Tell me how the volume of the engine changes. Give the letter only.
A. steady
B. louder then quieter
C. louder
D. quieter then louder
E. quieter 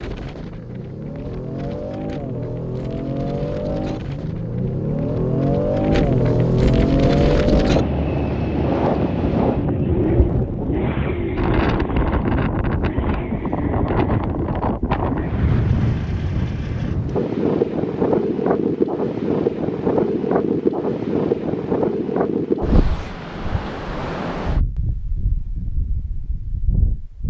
B.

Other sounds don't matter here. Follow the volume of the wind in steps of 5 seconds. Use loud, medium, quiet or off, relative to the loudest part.
quiet, loud, loud, loud, loud, quiet.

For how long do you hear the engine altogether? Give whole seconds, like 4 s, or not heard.
17 s.